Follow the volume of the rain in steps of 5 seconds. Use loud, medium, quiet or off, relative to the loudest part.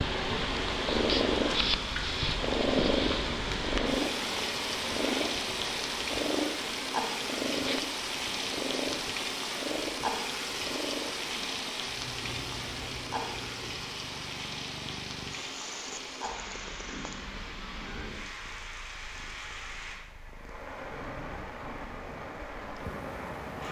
loud, loud, loud, medium, medium.